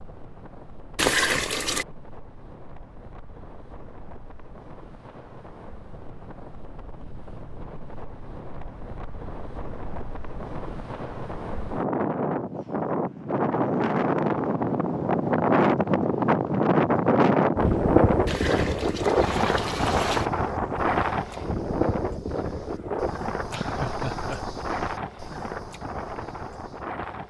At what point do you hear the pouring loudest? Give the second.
1 s.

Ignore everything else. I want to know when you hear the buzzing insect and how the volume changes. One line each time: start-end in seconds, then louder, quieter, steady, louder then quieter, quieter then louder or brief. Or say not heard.
not heard.